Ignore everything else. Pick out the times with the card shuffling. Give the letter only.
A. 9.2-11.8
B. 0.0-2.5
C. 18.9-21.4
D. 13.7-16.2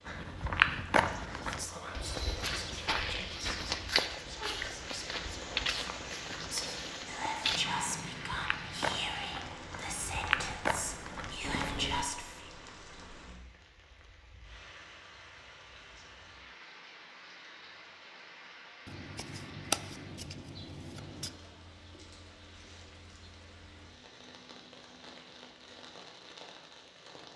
C.